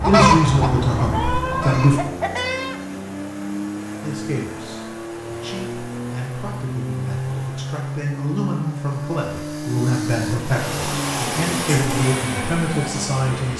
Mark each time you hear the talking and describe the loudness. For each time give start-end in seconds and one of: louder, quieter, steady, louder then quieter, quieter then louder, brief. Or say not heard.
0.1-2.0 brief
4.0-13.5 louder.